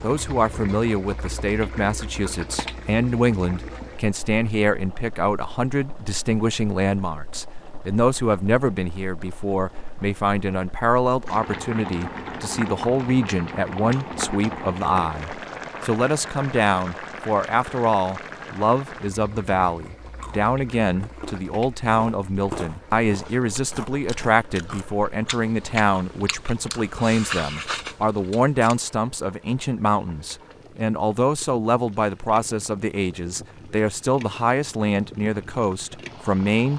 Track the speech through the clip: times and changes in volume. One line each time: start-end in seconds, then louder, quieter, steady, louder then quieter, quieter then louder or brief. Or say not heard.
0.0-36.7 steady.